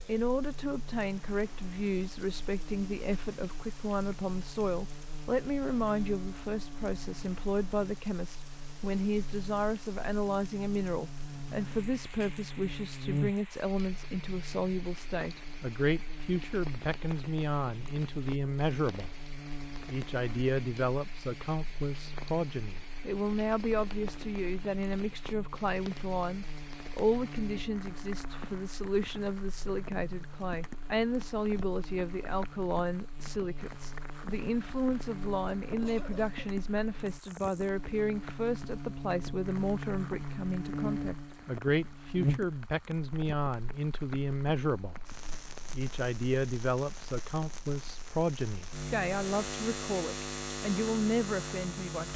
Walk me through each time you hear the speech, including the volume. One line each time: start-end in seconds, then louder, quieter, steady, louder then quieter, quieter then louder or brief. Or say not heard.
0.1-52.1 steady.